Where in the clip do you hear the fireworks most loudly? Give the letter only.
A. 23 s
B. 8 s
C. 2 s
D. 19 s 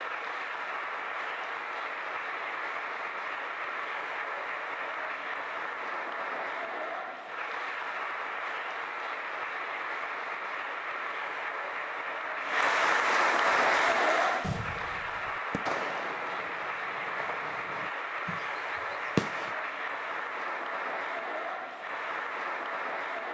D.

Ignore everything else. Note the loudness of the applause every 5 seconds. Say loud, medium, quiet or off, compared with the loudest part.
medium, medium, loud, medium, medium.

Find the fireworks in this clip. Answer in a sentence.
The fireworks can be heard from 13.5 to 19.6 s.